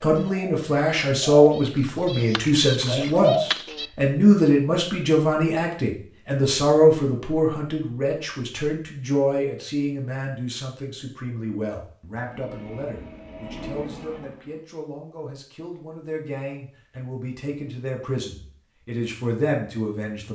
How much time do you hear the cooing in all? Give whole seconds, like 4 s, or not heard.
4 s.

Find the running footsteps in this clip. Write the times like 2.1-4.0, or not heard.
not heard.